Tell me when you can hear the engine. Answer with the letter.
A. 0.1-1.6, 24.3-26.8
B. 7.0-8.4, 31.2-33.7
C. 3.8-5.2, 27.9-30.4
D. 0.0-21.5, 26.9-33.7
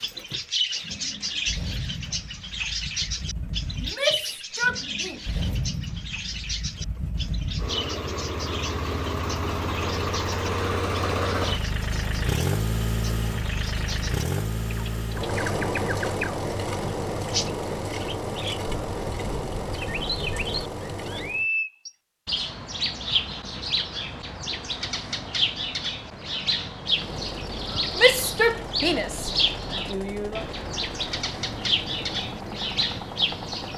D.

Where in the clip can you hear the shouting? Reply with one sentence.
The shouting can be heard from 3.8 to 5.2 s and from 27.9 to 30.4 s.